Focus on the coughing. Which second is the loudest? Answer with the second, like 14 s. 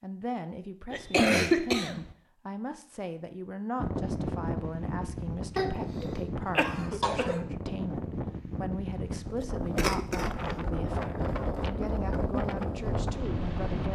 1 s.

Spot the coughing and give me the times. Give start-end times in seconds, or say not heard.
0.9-2.1, 5.5-7.5, 9.8-10.3.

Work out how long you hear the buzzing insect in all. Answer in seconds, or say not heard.
not heard.